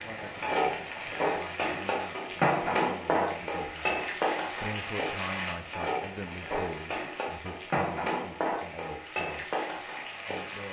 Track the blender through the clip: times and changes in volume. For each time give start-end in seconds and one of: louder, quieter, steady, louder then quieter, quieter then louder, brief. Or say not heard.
not heard.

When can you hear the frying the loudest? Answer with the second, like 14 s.
3 s.